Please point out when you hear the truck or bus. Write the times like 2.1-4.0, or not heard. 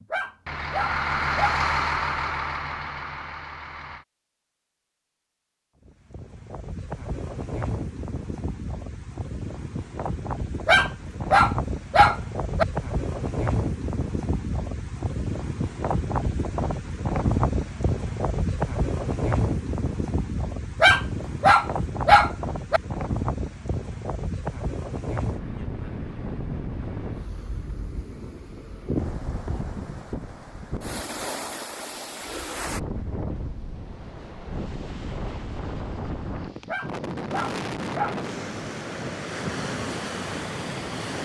0.0-4.0.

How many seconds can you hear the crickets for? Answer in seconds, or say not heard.
not heard.